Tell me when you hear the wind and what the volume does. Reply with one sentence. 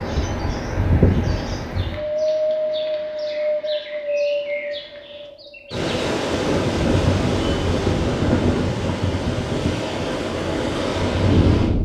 You can hear the wind from 0.0 to 11.8 s, at a steady volume.